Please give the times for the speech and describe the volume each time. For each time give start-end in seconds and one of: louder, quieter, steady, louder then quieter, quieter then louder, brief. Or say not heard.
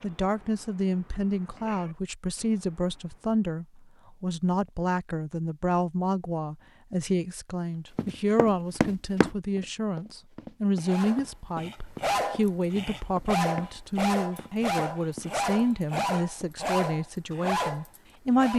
0.0-18.5 steady.